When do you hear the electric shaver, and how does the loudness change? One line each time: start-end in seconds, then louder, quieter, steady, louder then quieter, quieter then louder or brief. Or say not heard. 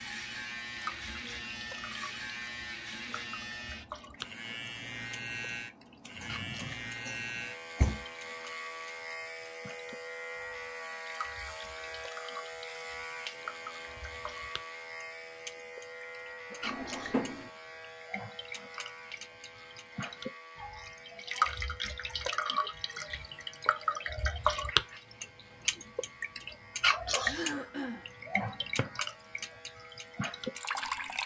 0.0-31.2 quieter.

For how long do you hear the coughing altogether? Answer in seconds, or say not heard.
3 s.